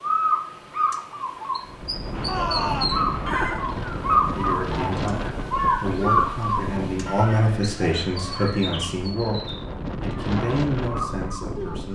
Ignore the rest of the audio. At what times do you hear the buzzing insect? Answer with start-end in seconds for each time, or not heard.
not heard.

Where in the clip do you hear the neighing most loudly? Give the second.
3 s.